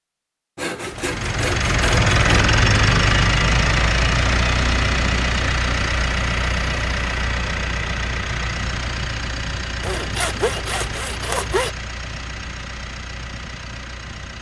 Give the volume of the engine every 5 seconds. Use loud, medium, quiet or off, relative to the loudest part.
loud, medium, quiet.